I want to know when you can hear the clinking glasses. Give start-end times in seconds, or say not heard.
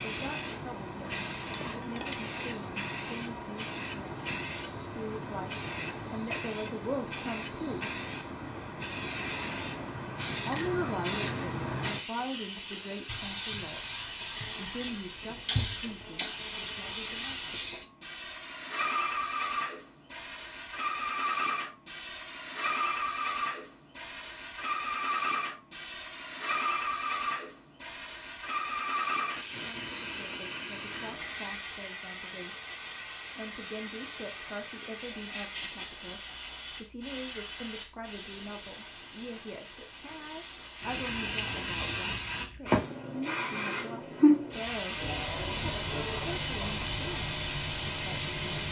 1.5-2.2.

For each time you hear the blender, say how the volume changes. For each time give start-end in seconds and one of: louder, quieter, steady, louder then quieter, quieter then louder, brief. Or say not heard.
not heard.